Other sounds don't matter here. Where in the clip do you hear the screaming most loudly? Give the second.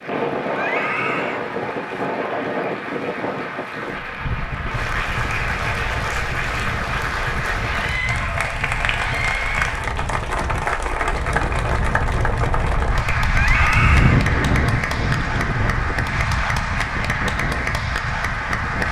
14 s.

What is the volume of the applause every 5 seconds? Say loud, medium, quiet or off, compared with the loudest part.
medium, loud, loud, loud.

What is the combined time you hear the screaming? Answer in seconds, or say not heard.
4 s.